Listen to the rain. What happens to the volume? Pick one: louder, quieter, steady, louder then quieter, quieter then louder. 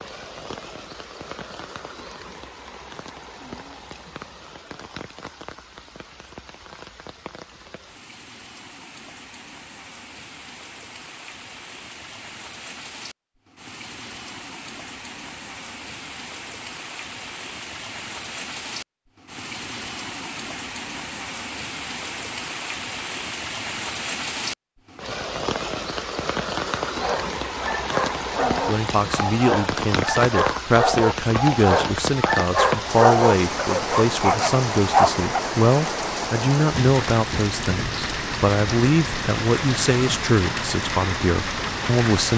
louder.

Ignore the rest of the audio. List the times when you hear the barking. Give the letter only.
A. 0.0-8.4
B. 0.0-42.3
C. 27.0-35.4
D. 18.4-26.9
C.